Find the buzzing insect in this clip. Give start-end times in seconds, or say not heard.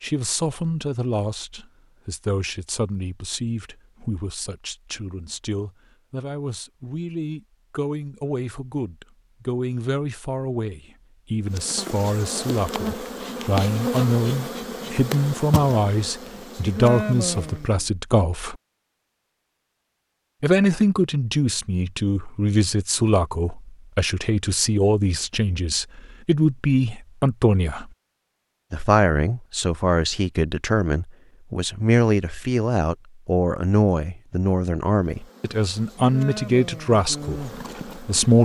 11.4-17.9, 35.0-38.4.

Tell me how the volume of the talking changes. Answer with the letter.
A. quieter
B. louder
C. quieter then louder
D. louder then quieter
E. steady
B.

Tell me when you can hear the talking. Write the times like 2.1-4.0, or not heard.
0.0-18.6, 20.4-27.9, 28.7-38.4.